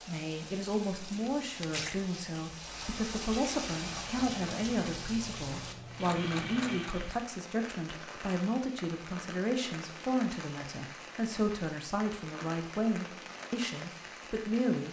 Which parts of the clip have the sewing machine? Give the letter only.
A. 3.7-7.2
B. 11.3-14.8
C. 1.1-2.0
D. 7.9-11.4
A.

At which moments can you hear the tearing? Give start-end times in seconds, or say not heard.
1.1-2.0.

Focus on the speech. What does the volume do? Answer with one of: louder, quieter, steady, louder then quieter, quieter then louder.
steady.